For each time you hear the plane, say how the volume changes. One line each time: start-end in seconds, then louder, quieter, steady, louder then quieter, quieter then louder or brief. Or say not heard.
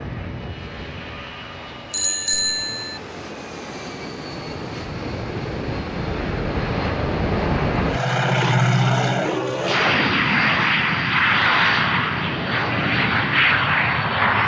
0.0-14.4 louder.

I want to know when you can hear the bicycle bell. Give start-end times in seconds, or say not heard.
1.9-3.0.